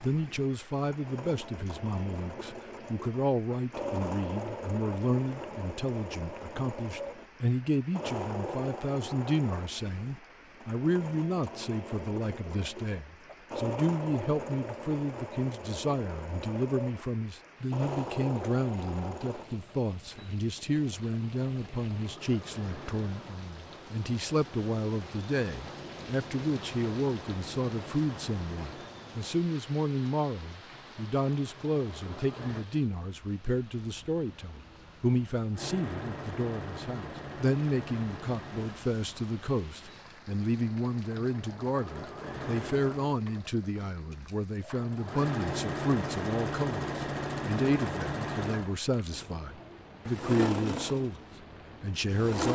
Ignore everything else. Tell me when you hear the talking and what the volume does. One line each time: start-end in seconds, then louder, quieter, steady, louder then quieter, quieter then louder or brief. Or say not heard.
0.0-51.2 steady
51.8-52.5 brief.